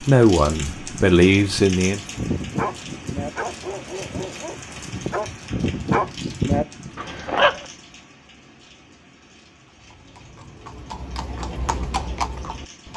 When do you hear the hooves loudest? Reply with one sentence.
The volume of the hooves peaks at 12 seconds.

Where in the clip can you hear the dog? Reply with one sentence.
The dog can be heard from 2.1 to 7.7 s.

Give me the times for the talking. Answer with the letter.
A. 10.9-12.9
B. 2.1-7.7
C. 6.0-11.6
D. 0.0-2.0
D.